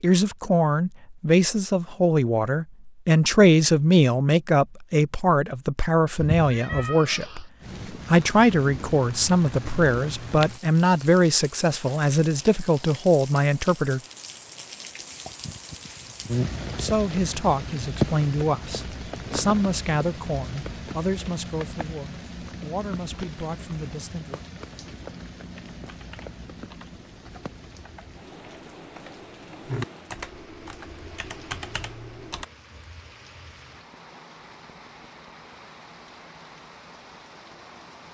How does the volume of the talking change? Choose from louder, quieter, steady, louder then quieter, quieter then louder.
quieter.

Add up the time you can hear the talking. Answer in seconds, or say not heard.
21 s.